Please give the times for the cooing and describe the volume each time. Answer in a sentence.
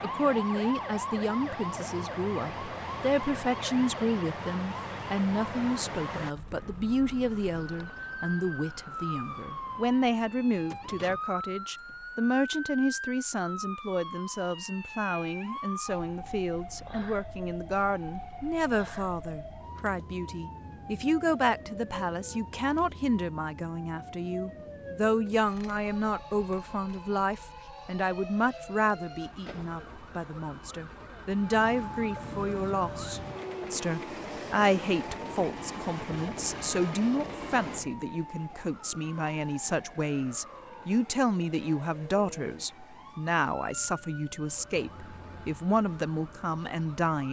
You can't hear the cooing here.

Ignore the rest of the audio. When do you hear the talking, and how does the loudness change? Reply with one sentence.
The talking can be heard from 0.0 to 47.2 s, at a steady volume.